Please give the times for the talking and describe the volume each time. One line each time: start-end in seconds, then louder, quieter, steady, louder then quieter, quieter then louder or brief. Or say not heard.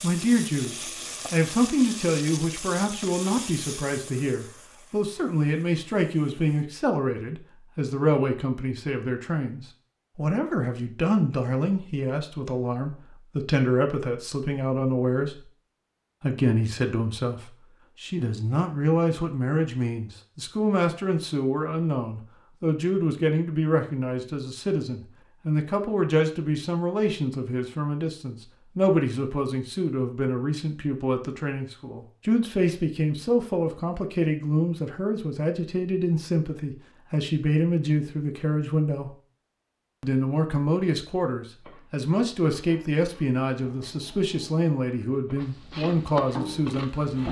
0.0-15.4 steady
16.2-39.1 steady
40.0-47.2 steady.